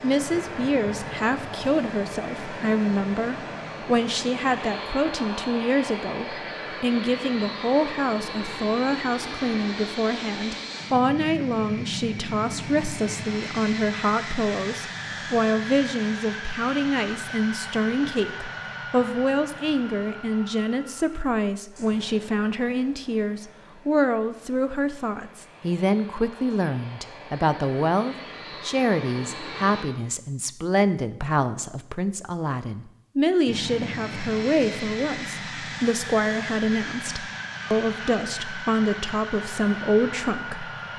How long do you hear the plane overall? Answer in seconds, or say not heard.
37 s.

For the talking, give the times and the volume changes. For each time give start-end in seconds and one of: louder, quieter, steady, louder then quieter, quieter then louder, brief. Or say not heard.
0.0-40.6 steady.